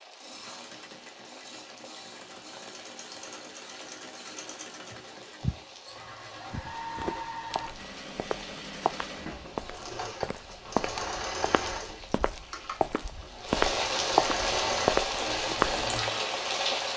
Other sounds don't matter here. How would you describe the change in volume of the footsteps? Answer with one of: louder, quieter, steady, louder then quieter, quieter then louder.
louder.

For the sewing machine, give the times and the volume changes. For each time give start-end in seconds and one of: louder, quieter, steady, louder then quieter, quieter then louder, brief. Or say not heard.
0.1-16.9 louder.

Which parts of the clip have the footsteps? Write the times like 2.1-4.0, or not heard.
4.9-15.8.